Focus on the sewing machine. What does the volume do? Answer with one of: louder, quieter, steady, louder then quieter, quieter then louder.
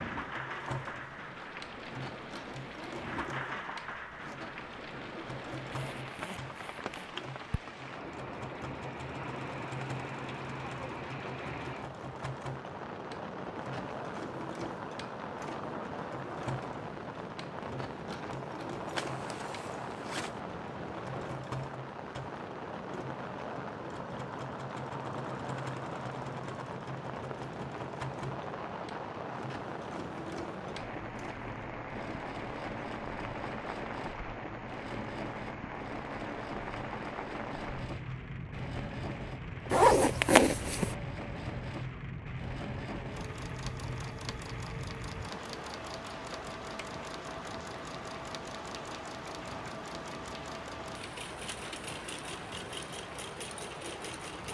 steady.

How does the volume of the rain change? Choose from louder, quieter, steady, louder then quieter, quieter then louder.
steady.